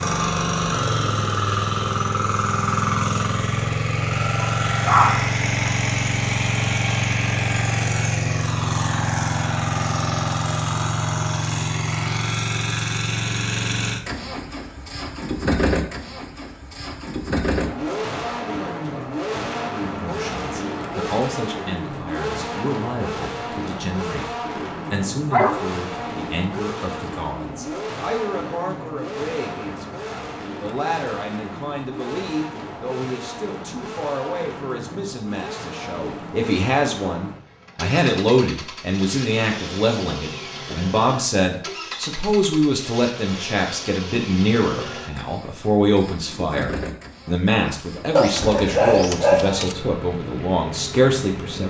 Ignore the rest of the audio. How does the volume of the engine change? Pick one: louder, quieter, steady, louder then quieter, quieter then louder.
quieter.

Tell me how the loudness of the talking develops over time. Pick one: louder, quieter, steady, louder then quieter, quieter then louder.
louder.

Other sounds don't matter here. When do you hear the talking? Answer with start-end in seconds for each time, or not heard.
19.9-51.6.